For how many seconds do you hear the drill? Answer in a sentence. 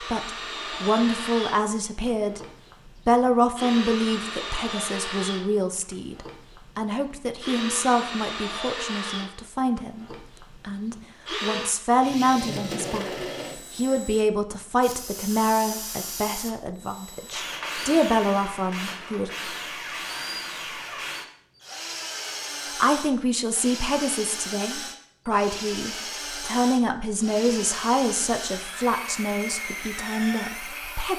You can hear the drill for 31 seconds altogether.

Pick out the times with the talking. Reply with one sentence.
You can hear the talking from 0.0 to 2.4 s, from 3.0 to 19.3 s and from 22.8 to 31.1 s.